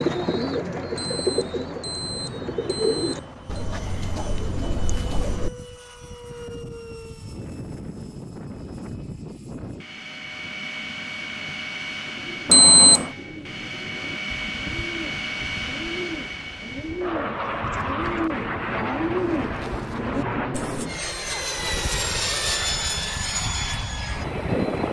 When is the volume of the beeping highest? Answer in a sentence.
The volume of the beeping peaks at 13 seconds.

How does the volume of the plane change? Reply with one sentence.
The loudness of the plane goes up.